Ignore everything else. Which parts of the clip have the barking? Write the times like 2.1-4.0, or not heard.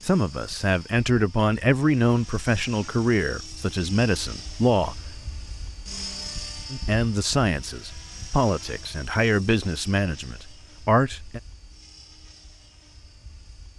not heard.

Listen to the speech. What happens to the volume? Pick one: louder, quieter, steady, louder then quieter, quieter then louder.
steady.